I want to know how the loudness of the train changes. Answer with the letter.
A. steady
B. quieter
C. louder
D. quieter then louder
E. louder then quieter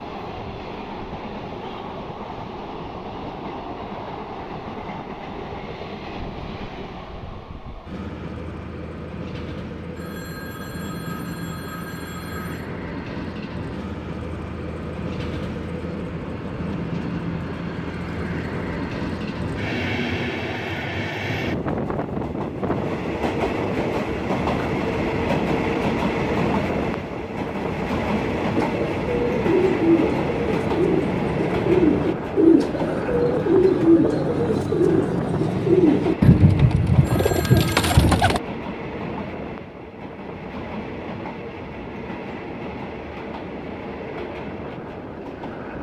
E.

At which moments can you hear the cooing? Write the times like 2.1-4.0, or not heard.
28.6-38.4.